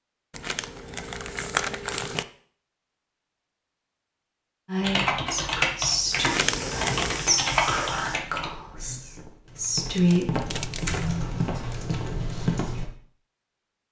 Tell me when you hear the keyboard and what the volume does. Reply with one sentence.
You can hear the keyboard from 4.8 to 12.9 s, getting quieter then louder.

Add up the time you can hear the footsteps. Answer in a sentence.
You can hear the footsteps for 7 seconds altogether.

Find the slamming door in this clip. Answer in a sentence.
The slamming door can't be heard in this clip.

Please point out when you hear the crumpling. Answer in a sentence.
The crumpling can be heard from 0.3 to 2.2 s, from 6.2 to 7.3 s and from 9.9 to 11.1 s.